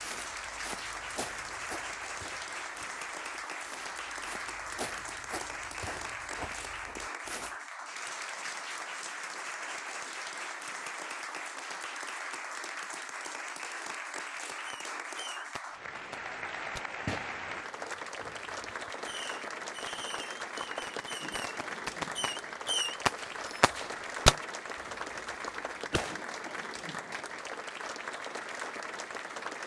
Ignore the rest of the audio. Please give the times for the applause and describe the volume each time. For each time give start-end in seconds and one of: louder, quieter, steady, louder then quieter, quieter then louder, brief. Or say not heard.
0.0-29.6 steady.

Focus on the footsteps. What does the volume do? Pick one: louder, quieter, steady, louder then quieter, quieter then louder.
quieter then louder.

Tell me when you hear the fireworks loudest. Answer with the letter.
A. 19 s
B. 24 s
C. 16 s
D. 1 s
B.